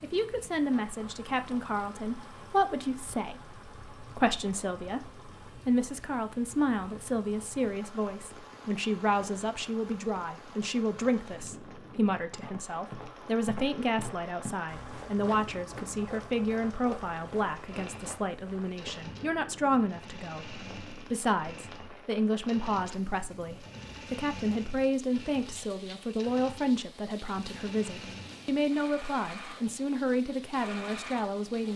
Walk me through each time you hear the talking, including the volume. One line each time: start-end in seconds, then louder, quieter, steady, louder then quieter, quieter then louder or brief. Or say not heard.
0.0-31.7 steady.